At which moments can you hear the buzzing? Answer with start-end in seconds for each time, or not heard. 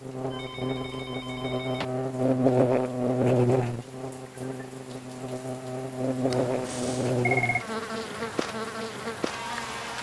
0.0-9.9.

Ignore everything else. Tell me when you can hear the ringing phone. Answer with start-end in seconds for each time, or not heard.
0.3-1.9, 6.3-7.7.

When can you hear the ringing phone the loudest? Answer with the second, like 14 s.
7 s.